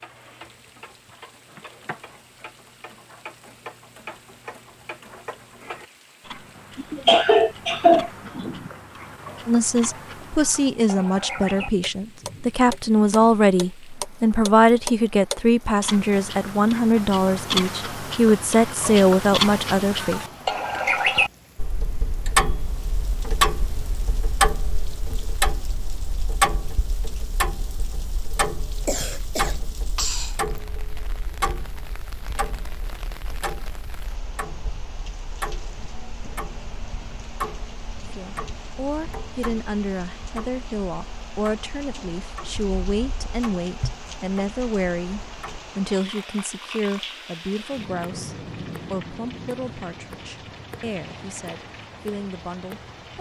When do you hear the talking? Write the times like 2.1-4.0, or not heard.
9.4-20.2, 38.1-53.1.